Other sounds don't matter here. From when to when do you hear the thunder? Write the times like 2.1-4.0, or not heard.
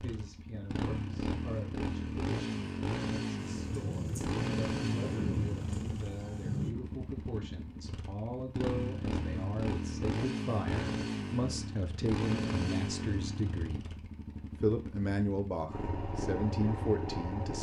3.4-6.8.